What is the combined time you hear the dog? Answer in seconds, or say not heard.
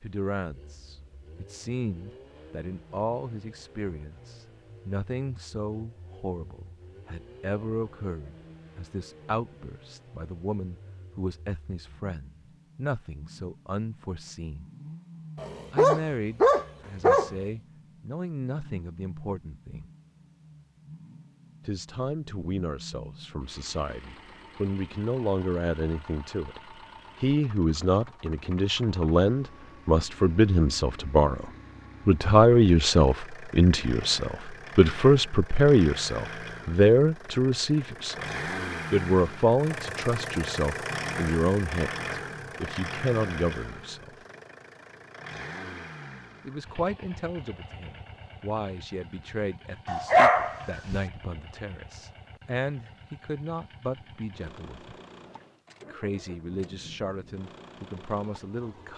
3 s.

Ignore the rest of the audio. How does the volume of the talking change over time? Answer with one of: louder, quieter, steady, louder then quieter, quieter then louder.
louder then quieter.